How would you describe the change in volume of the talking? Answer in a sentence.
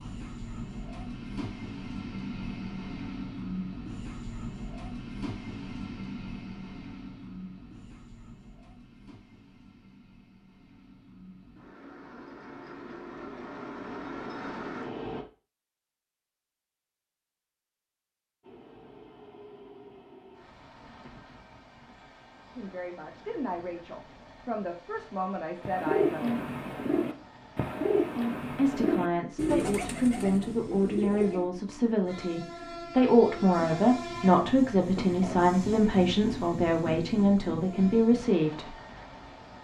The volume of the talking goes up.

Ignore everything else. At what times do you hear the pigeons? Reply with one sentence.
You can hear the pigeons from 25.6 to 31.5 s.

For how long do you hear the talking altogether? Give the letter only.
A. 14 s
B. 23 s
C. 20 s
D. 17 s
A.